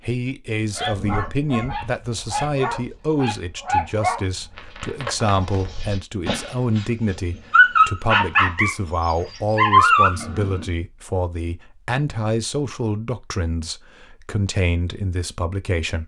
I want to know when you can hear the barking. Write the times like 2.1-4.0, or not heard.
0.7-10.7.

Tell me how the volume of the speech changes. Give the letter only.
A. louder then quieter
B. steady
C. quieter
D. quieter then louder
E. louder
B.